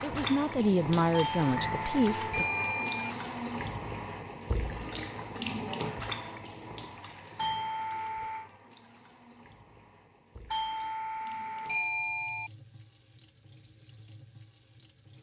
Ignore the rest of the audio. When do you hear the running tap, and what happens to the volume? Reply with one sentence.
You can hear the running tap from 0.0 to 15.1 s, getting quieter.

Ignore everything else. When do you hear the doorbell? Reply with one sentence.
The doorbell can be heard from 1.1 to 3.1 s, from 7.3 to 8.5 s and from 10.5 to 12.5 s.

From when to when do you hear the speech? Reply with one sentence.
The speech can be heard from 0.0 to 2.5 s.